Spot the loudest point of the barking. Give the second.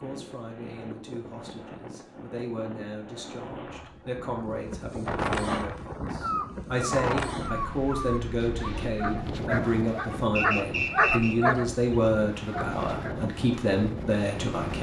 11 s.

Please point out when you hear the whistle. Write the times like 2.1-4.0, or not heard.
10.3-11.3.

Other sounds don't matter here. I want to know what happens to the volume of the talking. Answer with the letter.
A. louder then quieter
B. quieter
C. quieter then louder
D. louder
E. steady
D.